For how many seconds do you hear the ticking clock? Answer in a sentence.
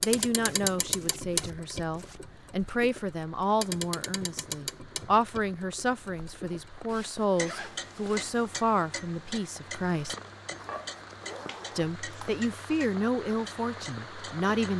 The ticking clock can be heard for 15 seconds in total.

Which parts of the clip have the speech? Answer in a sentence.
You can hear the speech from 0.0 to 10.2 s and from 11.8 to 14.7 s.